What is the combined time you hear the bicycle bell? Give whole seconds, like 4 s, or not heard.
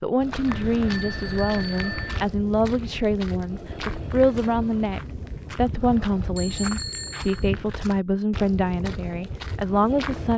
3 s.